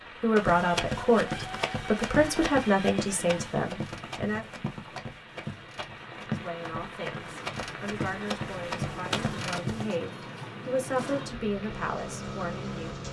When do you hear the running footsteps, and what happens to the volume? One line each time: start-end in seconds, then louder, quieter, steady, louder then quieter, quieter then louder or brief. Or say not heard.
0.3-9.9 quieter then louder.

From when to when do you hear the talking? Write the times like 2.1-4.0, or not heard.
0.2-4.5, 6.2-13.0.